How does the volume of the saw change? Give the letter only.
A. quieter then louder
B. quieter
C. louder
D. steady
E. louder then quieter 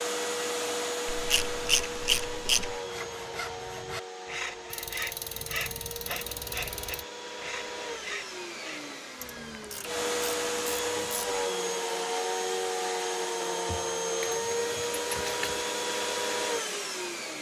D.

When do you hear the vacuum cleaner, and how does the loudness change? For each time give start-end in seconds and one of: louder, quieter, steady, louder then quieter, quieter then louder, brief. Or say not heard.
0.0-17.3 quieter then louder.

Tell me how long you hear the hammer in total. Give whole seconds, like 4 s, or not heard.
not heard.